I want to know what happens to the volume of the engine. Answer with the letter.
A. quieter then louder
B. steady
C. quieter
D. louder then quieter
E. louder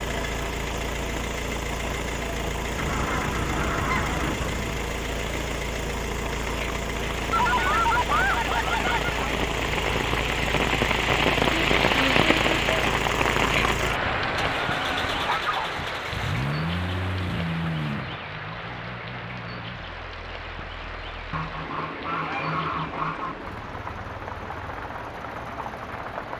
C.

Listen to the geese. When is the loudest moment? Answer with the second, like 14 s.
8 s.